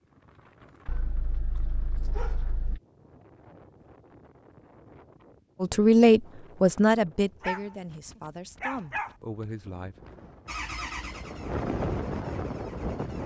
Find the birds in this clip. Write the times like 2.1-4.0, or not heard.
not heard.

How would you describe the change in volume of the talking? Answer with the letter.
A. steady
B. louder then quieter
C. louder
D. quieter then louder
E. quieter
E.